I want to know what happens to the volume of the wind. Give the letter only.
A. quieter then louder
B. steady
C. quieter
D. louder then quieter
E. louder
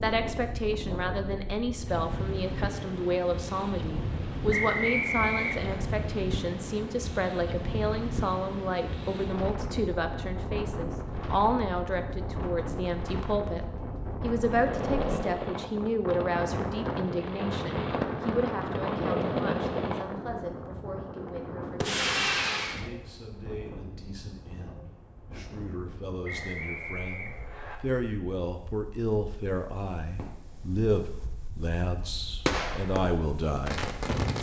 C.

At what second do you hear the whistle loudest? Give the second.
5 s.